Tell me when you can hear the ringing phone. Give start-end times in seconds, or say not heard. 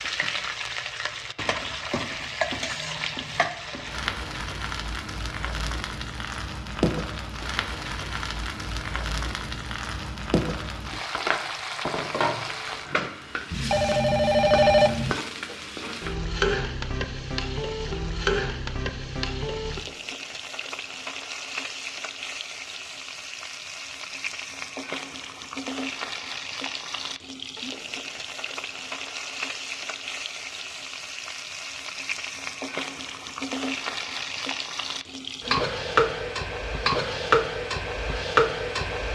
13.5-15.2.